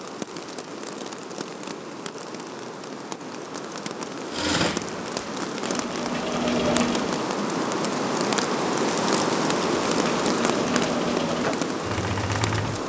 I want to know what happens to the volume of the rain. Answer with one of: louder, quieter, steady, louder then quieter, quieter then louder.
louder.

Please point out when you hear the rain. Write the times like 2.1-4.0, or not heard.
0.0-12.8.